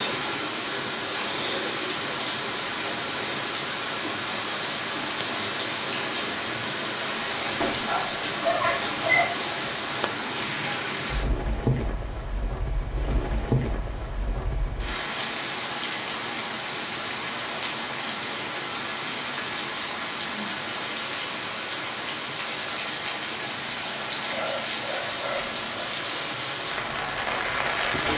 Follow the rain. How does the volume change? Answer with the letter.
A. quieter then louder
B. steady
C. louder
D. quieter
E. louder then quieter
B.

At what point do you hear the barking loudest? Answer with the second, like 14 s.
9 s.